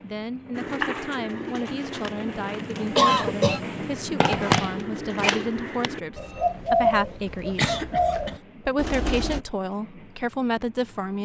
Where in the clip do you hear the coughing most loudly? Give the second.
3 s.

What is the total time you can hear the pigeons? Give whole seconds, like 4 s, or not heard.
9 s.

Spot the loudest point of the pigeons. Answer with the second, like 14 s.
7 s.